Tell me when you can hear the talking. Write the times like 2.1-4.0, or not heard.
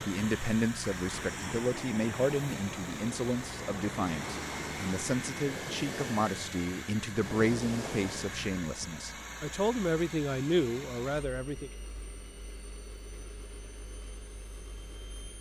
0.0-11.7.